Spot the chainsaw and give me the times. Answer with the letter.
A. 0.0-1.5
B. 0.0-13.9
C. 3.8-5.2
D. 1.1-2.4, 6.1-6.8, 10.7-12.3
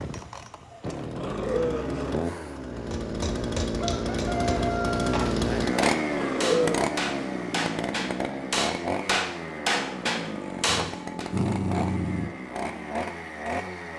B.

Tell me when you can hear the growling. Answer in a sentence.
You can hear the growling from 1.1 to 2.4 s, from 6.1 to 6.8 s and from 10.7 to 12.3 s.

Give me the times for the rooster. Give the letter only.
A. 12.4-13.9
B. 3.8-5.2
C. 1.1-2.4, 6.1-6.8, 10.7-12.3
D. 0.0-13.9
B.